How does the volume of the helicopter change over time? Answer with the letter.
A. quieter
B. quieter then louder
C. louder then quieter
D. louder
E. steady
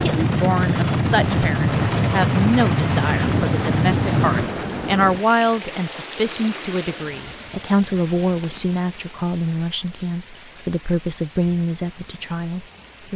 E.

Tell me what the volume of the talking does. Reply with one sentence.
The loudness of the talking stays about the same.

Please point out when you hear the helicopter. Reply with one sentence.
The helicopter can be heard from 0.0 to 4.5 s.